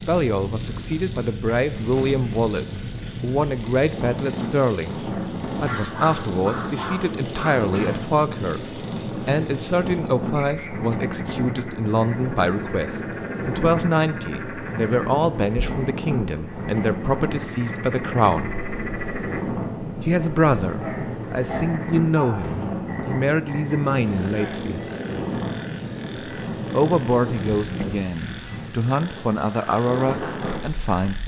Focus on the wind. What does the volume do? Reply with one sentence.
The volume of the wind stays about the same.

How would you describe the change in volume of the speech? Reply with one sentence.
The loudness of the speech stays about the same.